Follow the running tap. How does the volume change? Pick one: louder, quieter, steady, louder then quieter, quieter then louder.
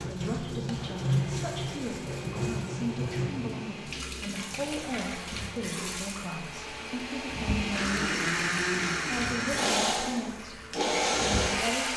quieter.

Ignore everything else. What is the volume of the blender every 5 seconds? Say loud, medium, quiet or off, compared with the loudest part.
quiet, loud, loud.